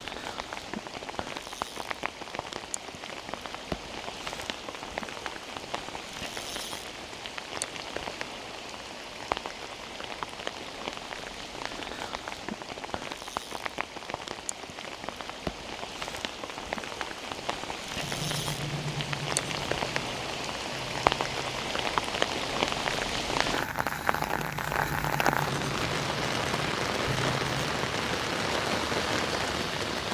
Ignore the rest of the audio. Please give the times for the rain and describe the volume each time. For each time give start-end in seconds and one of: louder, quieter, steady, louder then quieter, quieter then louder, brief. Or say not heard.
0.0-30.0 louder.